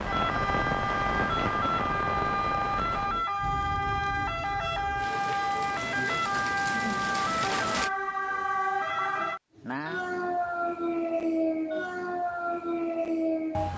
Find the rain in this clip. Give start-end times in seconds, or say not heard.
0.0-7.9.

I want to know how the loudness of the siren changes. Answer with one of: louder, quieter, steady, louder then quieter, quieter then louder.
steady.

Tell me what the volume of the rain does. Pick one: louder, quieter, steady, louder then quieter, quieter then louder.
quieter then louder.